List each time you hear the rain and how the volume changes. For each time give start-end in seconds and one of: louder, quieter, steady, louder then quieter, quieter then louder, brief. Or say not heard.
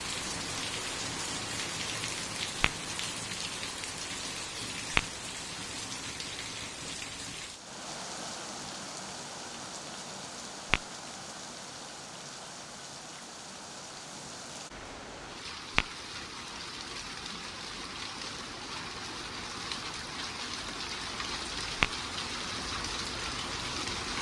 0.0-24.1 quieter then louder.